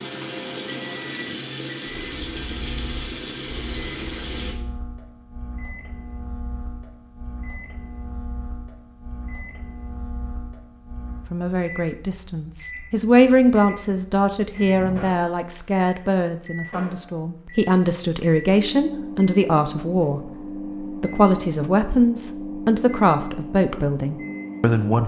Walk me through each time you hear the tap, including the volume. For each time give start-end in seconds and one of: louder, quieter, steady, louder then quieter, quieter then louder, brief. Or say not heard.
0.0-4.5 steady.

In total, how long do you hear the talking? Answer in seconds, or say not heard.
14 s.